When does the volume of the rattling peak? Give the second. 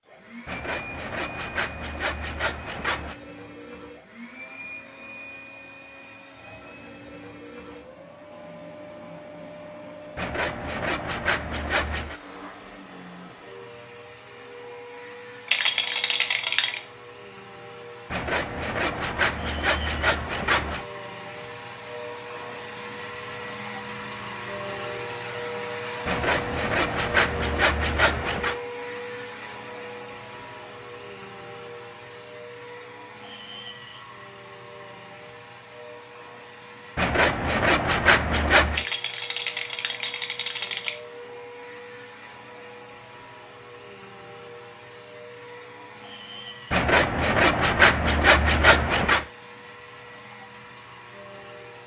16 s.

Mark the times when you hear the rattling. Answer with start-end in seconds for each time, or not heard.
15.4-16.8, 38.7-41.0.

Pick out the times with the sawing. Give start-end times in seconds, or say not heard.
0.5-3.1, 10.2-12.2, 18.1-20.9, 26.1-28.6, 37.0-38.9, 46.7-49.2.